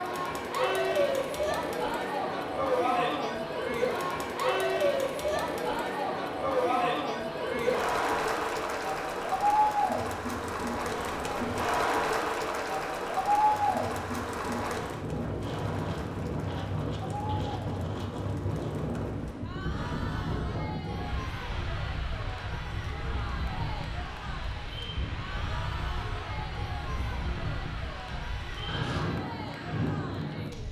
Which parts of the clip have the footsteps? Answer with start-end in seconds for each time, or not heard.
not heard.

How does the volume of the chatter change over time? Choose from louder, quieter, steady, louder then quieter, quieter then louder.
quieter.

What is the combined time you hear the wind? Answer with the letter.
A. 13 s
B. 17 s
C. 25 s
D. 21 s
B.